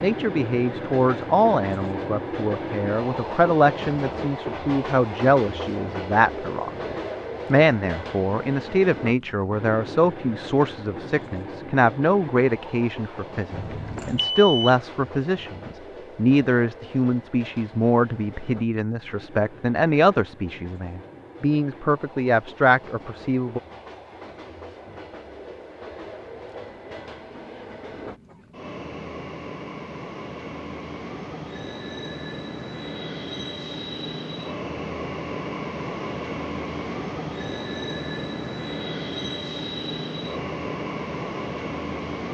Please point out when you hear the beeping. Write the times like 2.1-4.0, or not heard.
13.5-14.8.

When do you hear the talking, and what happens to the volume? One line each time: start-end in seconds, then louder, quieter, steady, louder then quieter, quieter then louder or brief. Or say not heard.
0.0-23.6 steady.